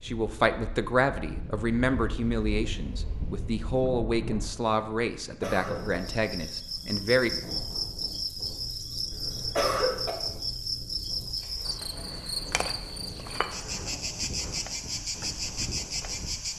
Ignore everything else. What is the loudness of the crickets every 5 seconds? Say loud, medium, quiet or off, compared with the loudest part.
off, loud, loud, loud.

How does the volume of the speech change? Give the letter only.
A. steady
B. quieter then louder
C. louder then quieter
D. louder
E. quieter
E.